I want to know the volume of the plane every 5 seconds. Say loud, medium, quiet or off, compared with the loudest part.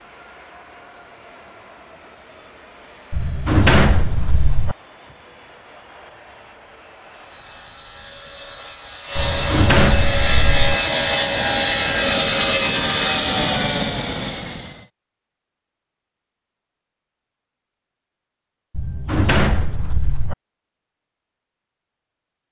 quiet, medium, loud, off, off.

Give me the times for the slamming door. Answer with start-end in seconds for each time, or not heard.
3.1-4.8, 9.2-10.8, 18.7-20.4.